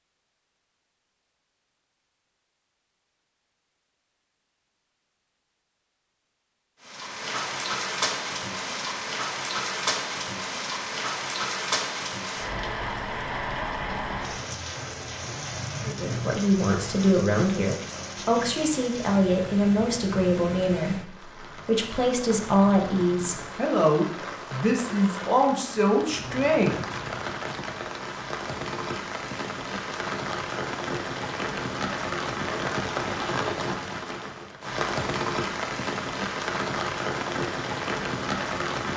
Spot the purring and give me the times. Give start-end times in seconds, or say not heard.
not heard.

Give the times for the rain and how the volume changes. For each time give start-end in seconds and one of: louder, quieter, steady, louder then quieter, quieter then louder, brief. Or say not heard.
6.8-38.9 quieter then louder.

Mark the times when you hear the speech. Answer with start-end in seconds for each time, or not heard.
15.8-26.9.